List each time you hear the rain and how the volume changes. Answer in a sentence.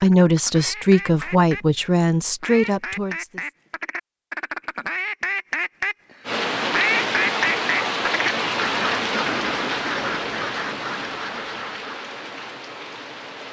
The rain can be heard from 6.2 to 13.4 s, getting quieter.